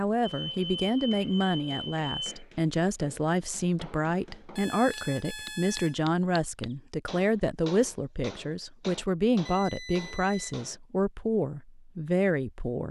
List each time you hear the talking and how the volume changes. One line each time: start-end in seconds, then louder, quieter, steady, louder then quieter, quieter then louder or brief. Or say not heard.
0.0-12.8 steady.